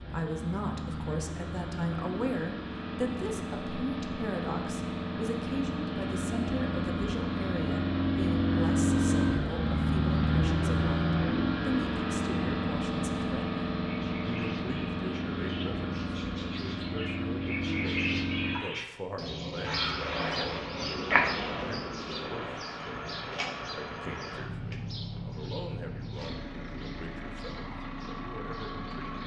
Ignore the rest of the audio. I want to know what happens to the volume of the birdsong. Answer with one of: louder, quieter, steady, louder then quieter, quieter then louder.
louder then quieter.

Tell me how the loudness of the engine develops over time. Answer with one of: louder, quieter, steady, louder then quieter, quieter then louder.
louder then quieter.